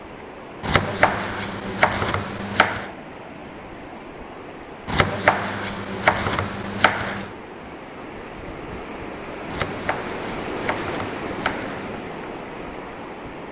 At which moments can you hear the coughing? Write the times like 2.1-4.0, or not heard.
not heard.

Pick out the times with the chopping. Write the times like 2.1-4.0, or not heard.
0.6-2.9, 4.8-7.3, 9.4-11.9.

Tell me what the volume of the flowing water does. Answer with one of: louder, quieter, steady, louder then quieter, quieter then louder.
louder.